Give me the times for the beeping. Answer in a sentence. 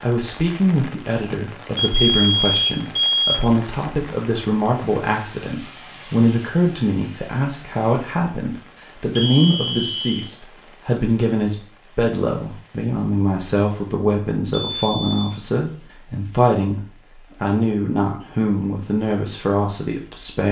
You can hear the beeping from 1.8 to 3.4 s, from 9.2 to 10.3 s and from 14.5 to 15.3 s.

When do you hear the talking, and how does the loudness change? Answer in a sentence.
You can hear the talking from 0.0 to 20.4 s, at a steady volume.